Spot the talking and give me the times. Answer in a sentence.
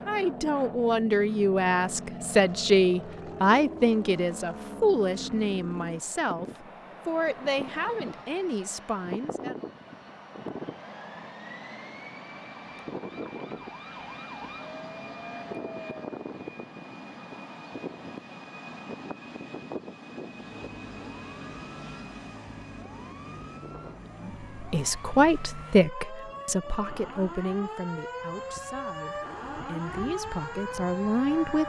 You can hear the talking from 0.1 to 9.7 s and from 24.2 to 31.6 s.